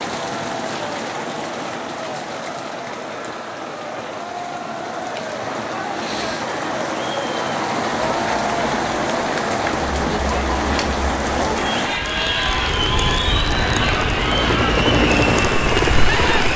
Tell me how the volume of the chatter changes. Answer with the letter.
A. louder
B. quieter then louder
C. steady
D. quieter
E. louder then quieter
A.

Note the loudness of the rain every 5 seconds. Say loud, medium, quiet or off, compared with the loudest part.
medium, loud, loud, loud.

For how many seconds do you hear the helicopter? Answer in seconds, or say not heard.
4 s.